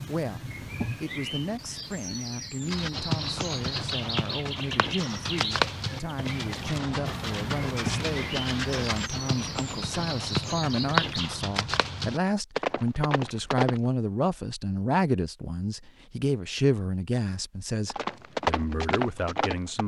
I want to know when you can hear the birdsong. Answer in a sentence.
The birdsong can be heard from 0.0 to 11.4 s.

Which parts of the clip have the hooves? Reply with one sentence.
You can hear the hooves from 2.6 to 13.8 s and from 17.9 to 19.8 s.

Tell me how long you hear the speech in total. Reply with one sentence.
You can hear the speech for 20 seconds altogether.